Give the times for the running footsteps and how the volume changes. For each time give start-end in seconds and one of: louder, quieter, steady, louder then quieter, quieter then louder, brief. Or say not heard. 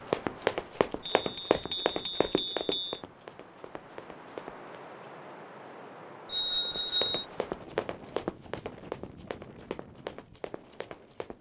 0.1-4.7 quieter
6.7-11.3 quieter.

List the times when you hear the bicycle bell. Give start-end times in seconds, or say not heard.
1.1-3.0, 6.2-7.2.